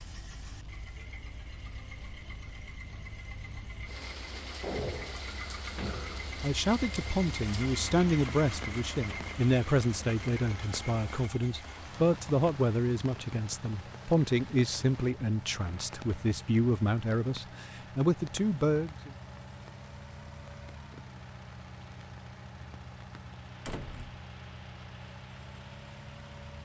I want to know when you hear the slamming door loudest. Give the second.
5 s.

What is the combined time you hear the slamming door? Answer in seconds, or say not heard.
2 s.